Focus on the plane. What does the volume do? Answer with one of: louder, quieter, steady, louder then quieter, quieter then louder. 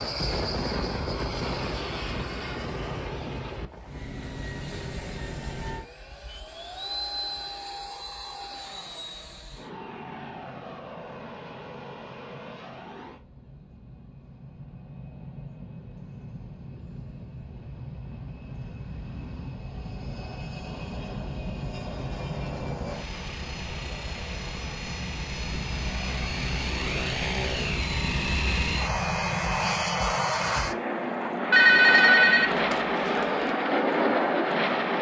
quieter then louder.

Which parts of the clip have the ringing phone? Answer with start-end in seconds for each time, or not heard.
31.5-33.2.